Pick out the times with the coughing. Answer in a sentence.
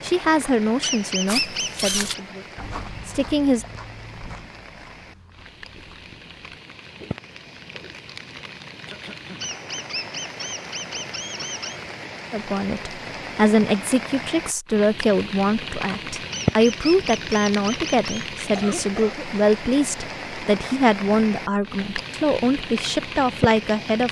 The coughing can be heard from 8.8 to 9.5 s and from 18.6 to 19.3 s.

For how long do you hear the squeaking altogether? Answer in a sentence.
The squeaking can be heard for 6 seconds in total.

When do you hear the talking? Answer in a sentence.
The talking can be heard from 0.0 to 3.6 s and from 12.3 to 24.0 s.